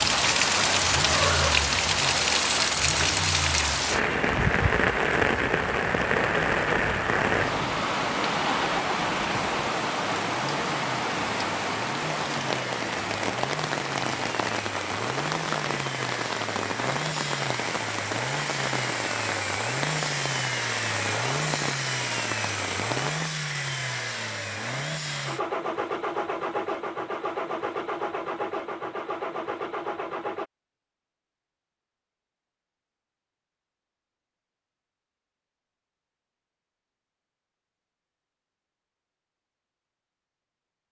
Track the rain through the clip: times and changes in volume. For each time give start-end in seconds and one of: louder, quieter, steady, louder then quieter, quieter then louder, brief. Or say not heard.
0.0-23.3 quieter.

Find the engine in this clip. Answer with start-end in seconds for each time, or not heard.
0.0-30.4.